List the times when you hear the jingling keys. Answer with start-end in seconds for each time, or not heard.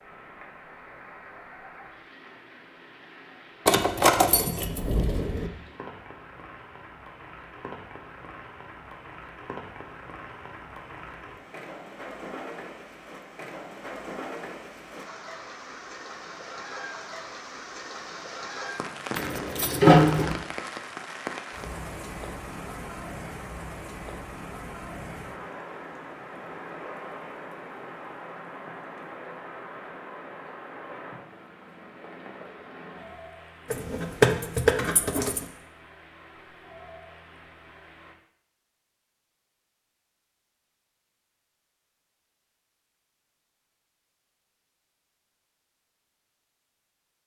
3.6-5.5, 19.1-20.4, 33.7-35.5.